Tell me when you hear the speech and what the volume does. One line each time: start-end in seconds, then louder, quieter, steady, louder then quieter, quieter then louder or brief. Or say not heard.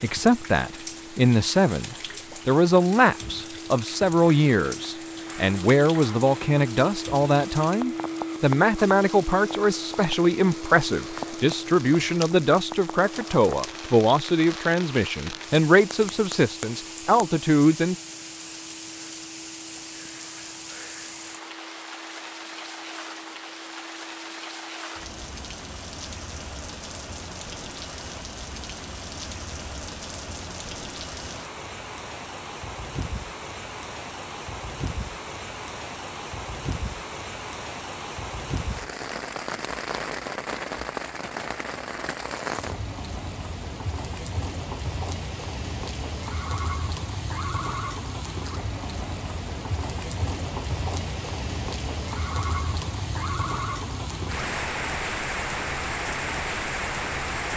0.0-17.9 steady.